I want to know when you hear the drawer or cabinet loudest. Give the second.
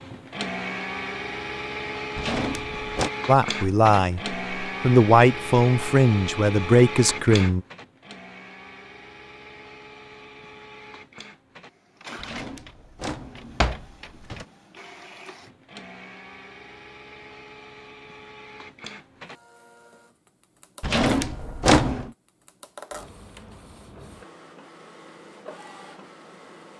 22 s.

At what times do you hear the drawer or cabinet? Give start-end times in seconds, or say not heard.
2.1-3.1, 12.2-14.4, 20.8-22.1.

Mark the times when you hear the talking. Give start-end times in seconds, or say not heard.
3.2-7.6.